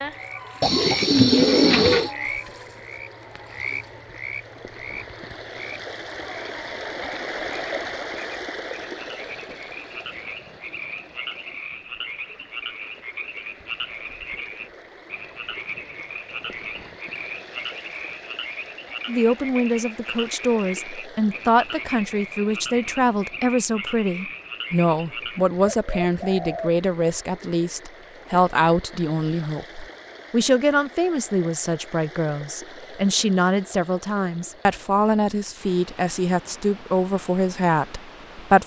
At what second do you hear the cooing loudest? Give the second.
1 s.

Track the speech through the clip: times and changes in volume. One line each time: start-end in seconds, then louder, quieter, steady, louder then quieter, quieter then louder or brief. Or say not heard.
19.1-38.6 steady.